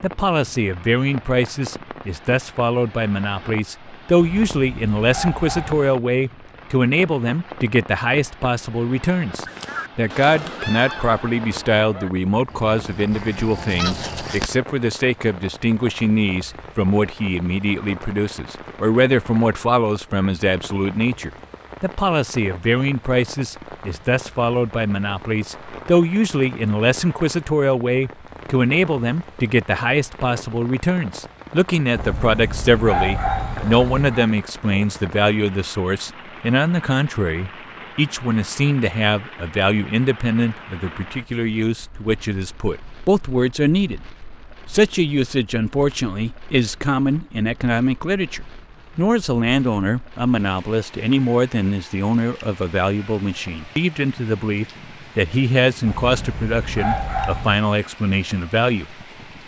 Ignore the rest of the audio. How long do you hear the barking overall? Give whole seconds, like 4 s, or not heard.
6 s.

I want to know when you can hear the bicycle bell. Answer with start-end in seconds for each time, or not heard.
not heard.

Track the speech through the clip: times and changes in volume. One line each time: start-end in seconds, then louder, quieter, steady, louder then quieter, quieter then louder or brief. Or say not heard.
0.0-59.0 steady.